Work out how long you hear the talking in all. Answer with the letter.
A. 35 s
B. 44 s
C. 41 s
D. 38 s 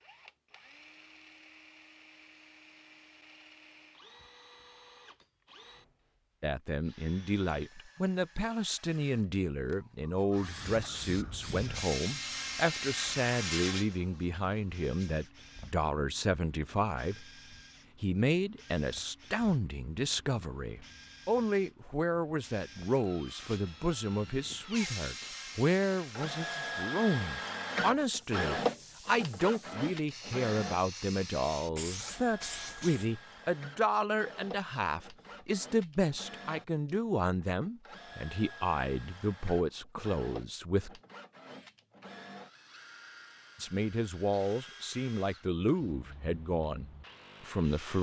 D.